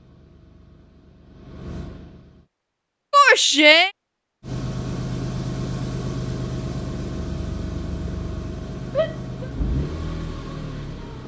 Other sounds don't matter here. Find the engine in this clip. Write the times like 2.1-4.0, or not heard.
0.0-2.5, 4.4-11.2.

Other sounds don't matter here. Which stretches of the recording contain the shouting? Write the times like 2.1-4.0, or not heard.
3.1-3.9, 8.9-9.5.